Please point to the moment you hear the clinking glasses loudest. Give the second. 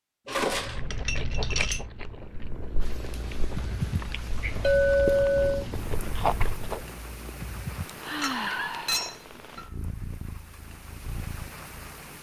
5 s.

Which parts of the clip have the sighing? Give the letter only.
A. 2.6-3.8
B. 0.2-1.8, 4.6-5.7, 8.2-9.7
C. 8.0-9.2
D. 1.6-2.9
C.